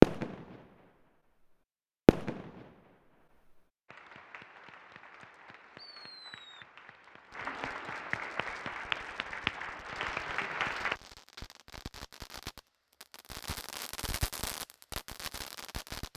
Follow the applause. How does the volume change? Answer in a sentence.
The loudness of the applause goes up.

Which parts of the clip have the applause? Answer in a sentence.
You can hear the applause from 3.9 to 11.0 s.